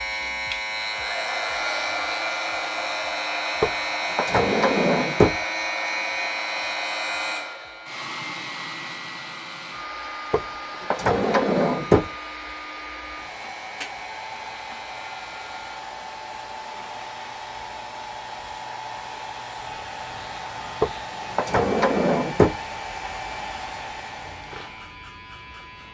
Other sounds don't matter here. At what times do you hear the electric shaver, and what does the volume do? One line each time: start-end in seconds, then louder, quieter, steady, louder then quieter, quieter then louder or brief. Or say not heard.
0.0-25.8 quieter.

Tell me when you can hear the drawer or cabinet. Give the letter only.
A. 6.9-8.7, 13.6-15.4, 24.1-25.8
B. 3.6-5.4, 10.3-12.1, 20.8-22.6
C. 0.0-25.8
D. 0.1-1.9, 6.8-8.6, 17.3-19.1
B.